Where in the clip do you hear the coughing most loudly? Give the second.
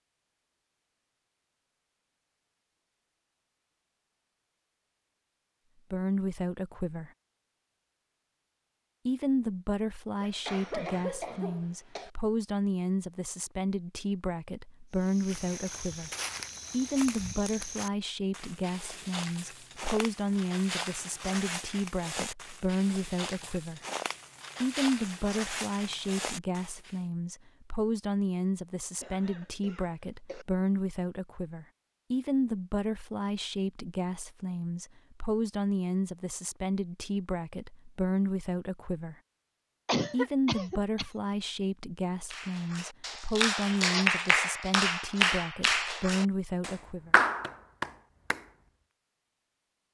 40 s.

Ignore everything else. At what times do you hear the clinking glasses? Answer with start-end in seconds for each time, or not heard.
not heard.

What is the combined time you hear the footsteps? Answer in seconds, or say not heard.
12 s.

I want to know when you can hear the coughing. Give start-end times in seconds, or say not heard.
10.2-12.1, 29.0-30.4, 39.9-41.1.